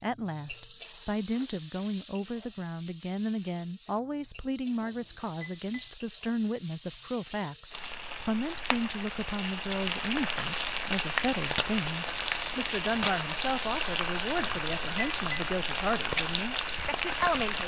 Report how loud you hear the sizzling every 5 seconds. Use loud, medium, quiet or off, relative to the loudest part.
quiet, medium, loud, loud.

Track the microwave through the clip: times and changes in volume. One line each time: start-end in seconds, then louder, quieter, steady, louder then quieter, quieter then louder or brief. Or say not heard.
not heard.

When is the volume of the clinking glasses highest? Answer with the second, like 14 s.
15 s.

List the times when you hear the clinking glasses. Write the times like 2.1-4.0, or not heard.
4.8-5.8, 14.4-15.4.